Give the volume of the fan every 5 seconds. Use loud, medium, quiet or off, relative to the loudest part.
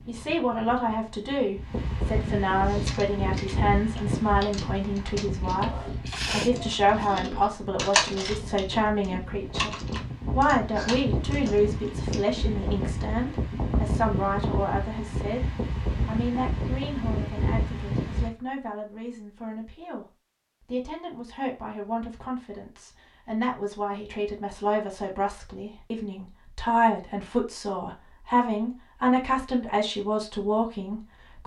loud, medium, loud, loud, off, off, off.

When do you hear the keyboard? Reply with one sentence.
You can hear the keyboard from 2.6 to 12.3 s.